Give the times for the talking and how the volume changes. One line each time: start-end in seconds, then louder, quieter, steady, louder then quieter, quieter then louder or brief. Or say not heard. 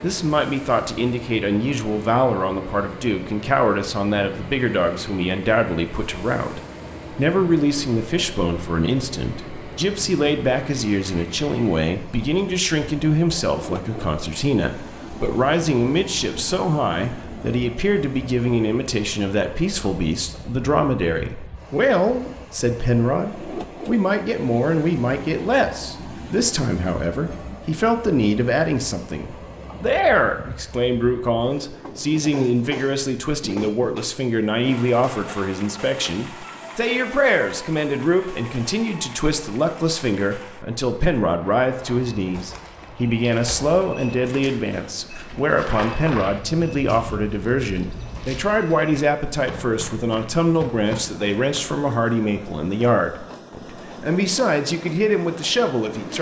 0.0-56.1 steady.